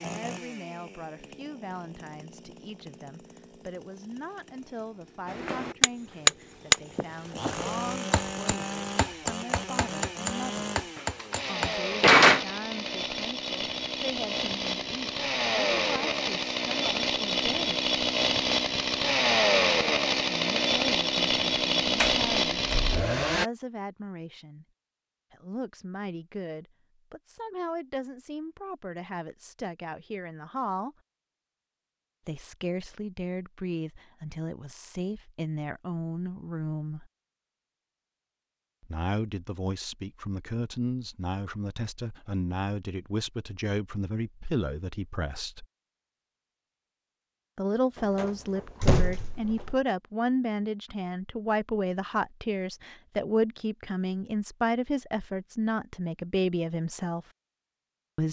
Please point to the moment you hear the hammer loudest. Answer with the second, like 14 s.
6 s.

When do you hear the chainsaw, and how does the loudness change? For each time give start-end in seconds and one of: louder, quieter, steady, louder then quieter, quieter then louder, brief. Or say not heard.
0.0-23.4 louder.